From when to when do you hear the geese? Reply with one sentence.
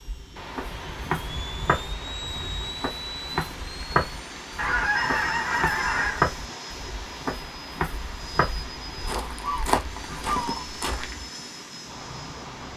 You can hear the geese from 0.7 to 2.7 s, from 4.5 to 6.2 s and from 9.4 to 10.7 s.